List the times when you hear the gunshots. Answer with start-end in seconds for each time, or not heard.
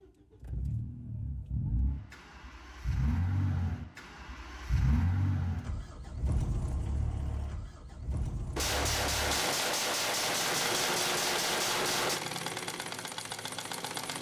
8.6-12.2.